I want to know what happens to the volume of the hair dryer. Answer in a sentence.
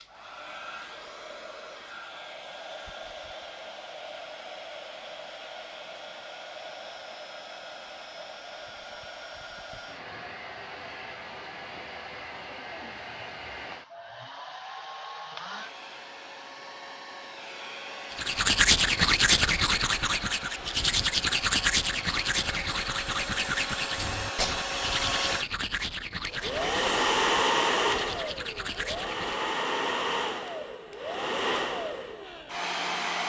The volume of the hair dryer goes up.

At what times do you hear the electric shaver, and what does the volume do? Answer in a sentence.
The electric shaver can't be heard in this clip.